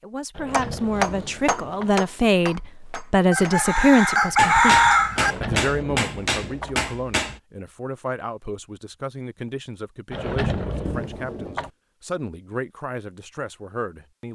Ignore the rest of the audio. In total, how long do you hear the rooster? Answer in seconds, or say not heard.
2 s.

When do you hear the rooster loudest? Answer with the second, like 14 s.
5 s.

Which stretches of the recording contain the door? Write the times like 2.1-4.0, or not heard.
0.3-1.9, 5.2-6.8, 10.1-11.7.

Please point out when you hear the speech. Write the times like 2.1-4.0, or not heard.
0.0-14.3.